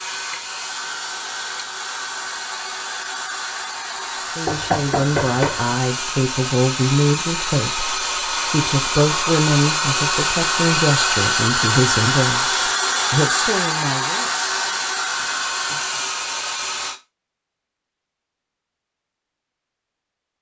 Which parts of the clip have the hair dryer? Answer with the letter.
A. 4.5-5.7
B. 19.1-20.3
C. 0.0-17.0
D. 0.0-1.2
C.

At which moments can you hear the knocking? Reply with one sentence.
The knocking can be heard from 4.5 to 5.7 s.